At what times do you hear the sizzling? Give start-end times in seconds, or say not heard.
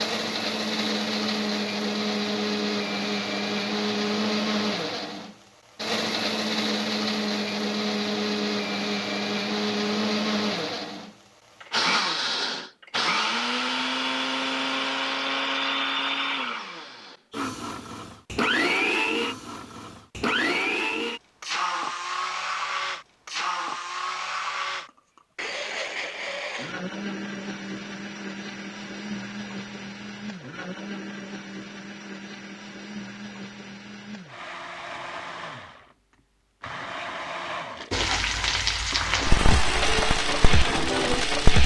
37.9-41.6.